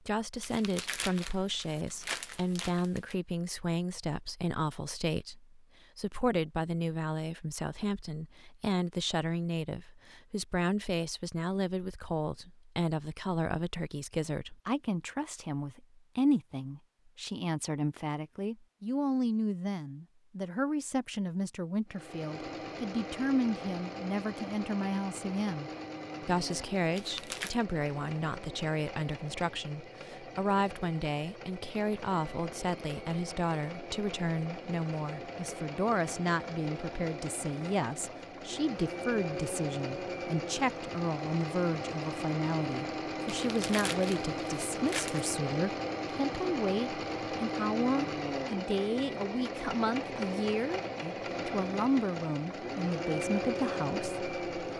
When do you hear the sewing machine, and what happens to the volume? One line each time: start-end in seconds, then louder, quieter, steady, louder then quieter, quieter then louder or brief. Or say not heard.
21.9-54.7 louder.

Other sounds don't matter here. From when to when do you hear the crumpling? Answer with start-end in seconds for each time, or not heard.
0.4-3.1, 26.9-27.6, 43.5-45.3.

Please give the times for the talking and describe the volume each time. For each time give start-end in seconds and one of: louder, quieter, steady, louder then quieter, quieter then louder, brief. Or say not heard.
0.1-54.7 steady.